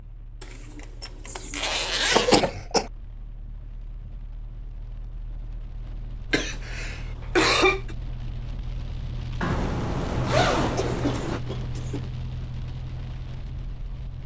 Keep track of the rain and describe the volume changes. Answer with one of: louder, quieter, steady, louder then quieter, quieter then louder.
louder.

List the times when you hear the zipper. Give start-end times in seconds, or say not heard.
0.4-2.5, 9.4-11.4.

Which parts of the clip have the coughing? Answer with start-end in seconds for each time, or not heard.
1.2-2.9, 6.3-8.0, 10.6-12.1.